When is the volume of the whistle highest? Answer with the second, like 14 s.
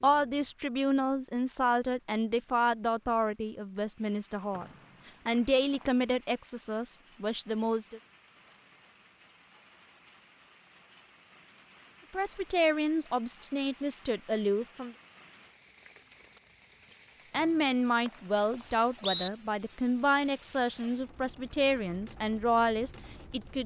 19 s.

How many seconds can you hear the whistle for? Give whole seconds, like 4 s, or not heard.
3 s.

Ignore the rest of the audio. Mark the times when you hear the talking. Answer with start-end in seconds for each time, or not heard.
0.0-4.7, 5.2-8.0, 12.1-14.9, 17.3-23.6.